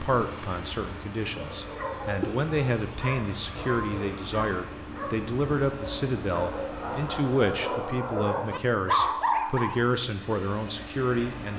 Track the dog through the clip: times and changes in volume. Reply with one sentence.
The dog can be heard from 1.2 to 9.9 s, getting louder.